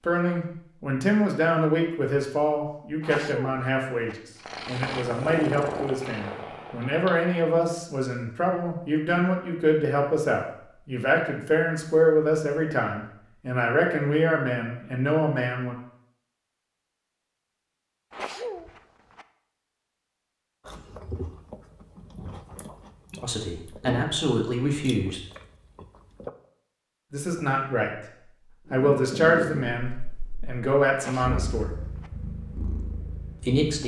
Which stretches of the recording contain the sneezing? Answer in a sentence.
The sneezing can be heard from 3.0 to 4.2 s, from 18.1 to 19.2 s and from 30.9 to 32.1 s.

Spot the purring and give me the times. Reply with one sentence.
The purring can be heard from 4.3 to 7.5 s and from 28.9 to 33.8 s.